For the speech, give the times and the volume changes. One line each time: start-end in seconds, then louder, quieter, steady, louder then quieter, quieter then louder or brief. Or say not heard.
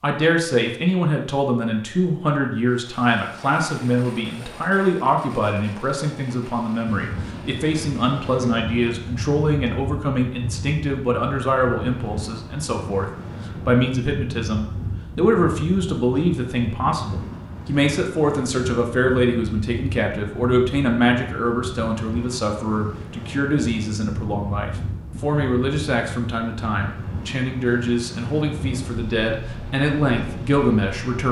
0.0-31.2 steady.